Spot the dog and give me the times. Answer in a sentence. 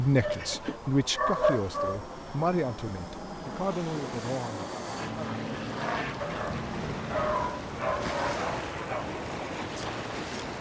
You can hear the dog from 0.2 to 2.0 s and from 6.2 to 9.1 s.